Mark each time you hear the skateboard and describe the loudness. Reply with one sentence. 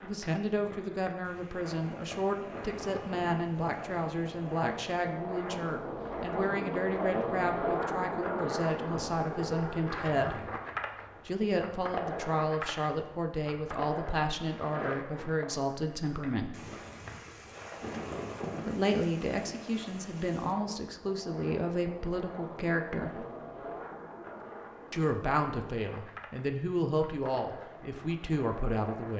You can hear the skateboard from 0.0 to 29.1 s, getting louder then quieter.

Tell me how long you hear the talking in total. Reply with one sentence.
You can hear the talking for 25 seconds altogether.